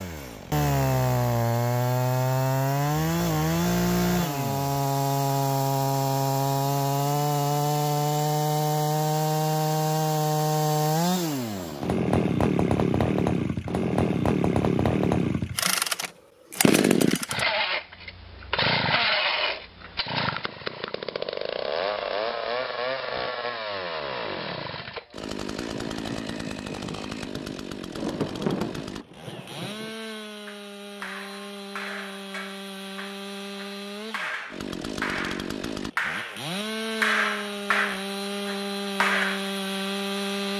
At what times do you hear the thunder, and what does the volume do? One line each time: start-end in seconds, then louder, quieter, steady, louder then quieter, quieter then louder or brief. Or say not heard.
25.7-29.9 louder then quieter.